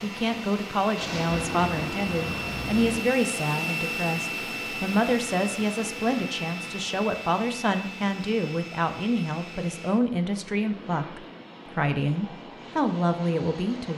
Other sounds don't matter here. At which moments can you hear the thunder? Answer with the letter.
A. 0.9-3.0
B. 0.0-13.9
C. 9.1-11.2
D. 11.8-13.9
A.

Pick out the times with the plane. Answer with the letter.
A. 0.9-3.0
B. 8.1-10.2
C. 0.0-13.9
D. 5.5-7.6
C.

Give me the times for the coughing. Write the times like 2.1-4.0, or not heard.
not heard.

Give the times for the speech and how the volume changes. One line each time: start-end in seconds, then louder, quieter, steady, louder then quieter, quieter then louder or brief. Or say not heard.
0.0-13.9 steady.